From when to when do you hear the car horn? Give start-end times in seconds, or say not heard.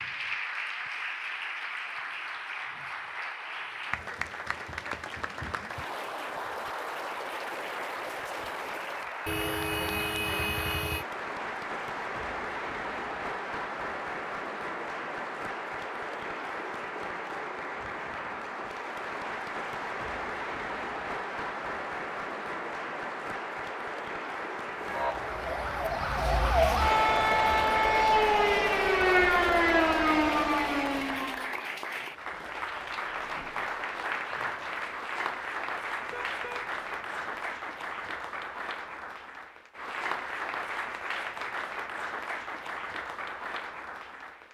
9.2-11.1, 36.1-37.5.